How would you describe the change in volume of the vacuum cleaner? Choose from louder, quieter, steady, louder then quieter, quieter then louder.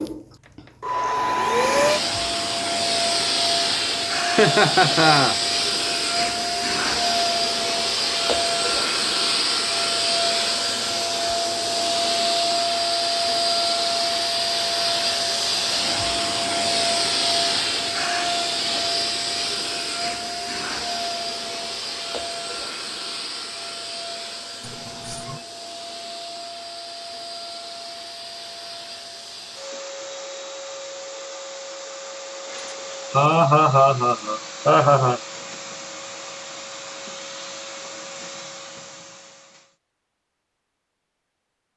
quieter.